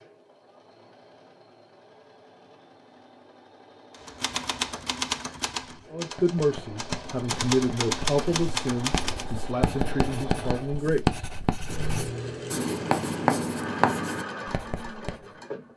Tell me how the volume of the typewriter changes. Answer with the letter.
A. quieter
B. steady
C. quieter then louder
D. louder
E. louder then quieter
C.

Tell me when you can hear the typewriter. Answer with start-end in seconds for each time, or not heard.
3.9-9.2.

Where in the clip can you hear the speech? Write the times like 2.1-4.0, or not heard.
5.9-11.2.